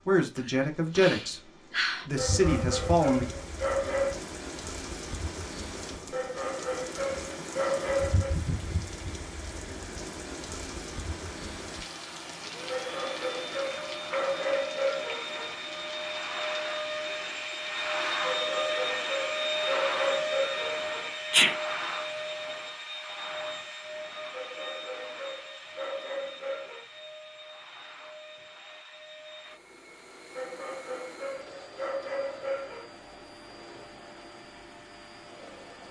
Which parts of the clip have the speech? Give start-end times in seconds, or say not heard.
0.1-3.3.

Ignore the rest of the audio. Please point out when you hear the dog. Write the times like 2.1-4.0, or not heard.
2.1-4.2, 6.1-8.3, 12.7-15.6, 18.2-21.1, 24.3-26.9, 30.4-32.9.